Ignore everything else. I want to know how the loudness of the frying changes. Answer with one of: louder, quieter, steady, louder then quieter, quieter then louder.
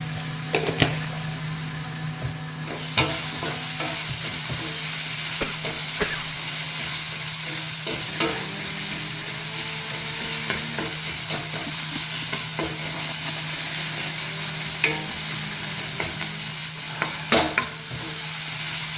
steady.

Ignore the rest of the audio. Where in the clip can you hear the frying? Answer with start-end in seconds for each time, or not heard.
0.0-18.9.